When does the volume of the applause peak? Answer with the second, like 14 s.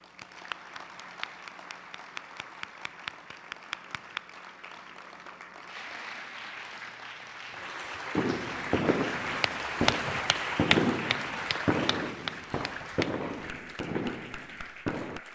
10 s.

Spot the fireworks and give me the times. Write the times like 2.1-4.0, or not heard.
8.2-15.2.